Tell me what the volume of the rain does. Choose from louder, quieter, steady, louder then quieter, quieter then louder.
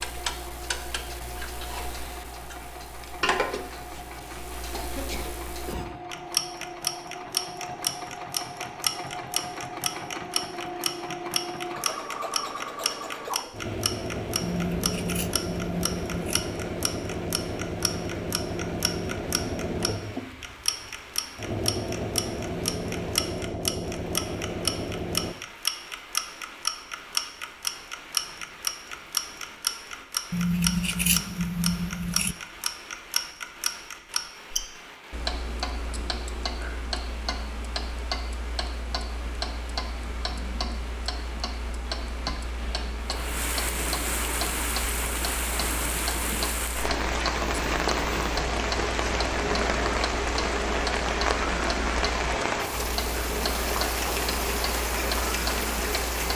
louder.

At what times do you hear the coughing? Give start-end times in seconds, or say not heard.
4.7-6.0.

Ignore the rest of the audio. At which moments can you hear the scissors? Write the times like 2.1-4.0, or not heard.
14.4-16.4, 30.3-32.4.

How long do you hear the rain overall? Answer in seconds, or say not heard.
43 s.